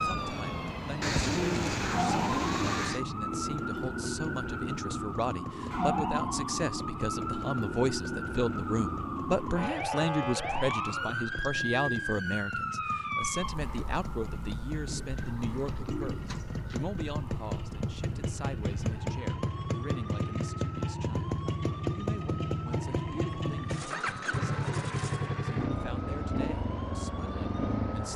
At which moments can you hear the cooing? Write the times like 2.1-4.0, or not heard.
1.0-3.0, 10.5-12.2, 14.8-16.9, 23.6-25.3.